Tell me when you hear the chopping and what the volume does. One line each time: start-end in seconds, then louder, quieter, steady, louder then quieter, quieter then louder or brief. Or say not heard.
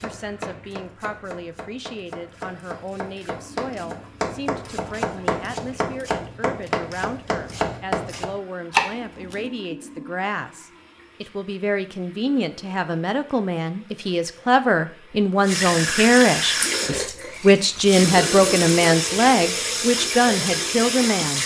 0.0-9.4 louder.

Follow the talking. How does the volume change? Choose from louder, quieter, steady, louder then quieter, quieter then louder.
louder.